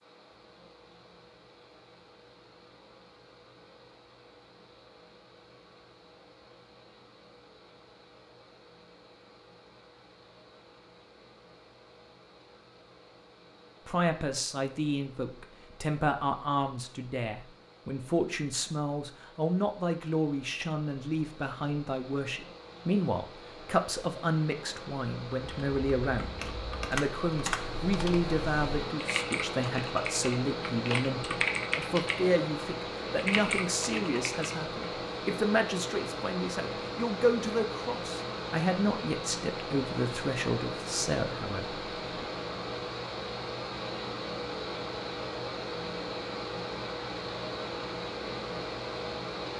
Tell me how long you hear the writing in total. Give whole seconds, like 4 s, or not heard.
not heard.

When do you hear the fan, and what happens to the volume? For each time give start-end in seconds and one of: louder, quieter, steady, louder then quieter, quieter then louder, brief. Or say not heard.
0.0-49.5 louder.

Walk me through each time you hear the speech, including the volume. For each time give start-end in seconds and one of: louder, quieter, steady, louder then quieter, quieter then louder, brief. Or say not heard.
13.8-42.2 steady.